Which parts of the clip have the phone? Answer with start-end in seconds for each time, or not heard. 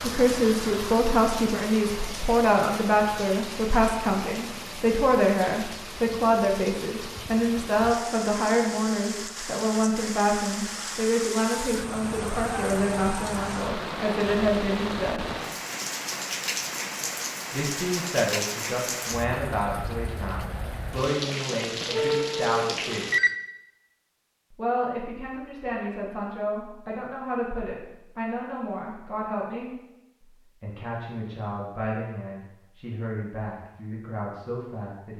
21.9-23.4.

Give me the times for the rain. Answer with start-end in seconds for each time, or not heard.
0.0-23.2.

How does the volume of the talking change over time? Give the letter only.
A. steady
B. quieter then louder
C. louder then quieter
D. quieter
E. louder
D.